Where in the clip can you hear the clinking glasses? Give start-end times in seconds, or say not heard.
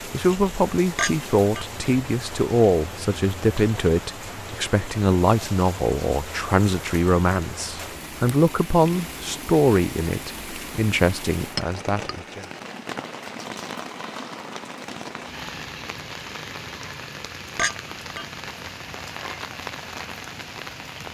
0.9-1.6, 11.6-12.2, 17.6-18.7.